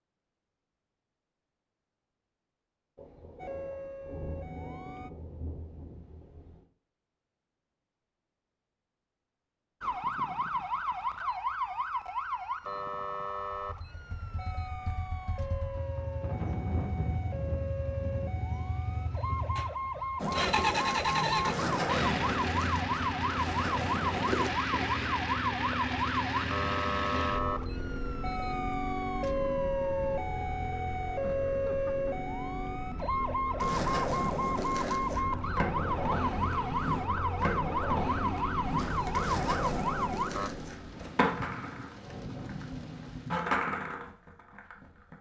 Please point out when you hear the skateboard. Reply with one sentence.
You can hear the skateboard from 20.1 to 24.5 s and from 33.5 to 45.1 s.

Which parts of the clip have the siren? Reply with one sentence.
You can hear the siren from 3.4 to 5.1 s and from 9.8 to 40.5 s.